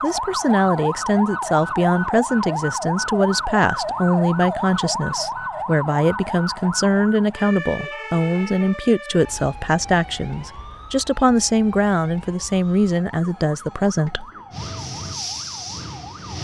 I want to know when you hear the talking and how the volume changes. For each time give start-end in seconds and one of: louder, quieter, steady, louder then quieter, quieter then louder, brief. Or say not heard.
0.0-14.2 steady.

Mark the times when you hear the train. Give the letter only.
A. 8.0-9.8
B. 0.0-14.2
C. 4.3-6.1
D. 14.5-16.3
D.